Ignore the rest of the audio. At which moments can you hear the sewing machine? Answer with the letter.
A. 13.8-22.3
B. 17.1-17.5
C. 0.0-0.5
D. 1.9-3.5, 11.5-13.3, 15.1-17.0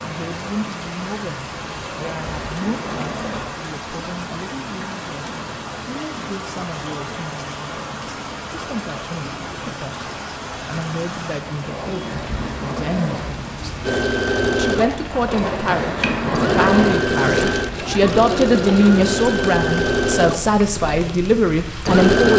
A.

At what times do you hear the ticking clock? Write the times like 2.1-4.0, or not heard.
not heard.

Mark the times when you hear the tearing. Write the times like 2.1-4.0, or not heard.
1.9-3.5, 11.5-13.3, 15.1-17.0.